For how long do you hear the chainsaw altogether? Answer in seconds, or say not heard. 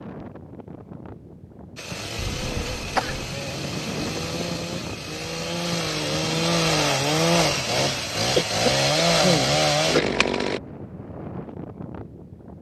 9 s.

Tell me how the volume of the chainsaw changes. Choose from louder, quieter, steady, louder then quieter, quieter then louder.
louder.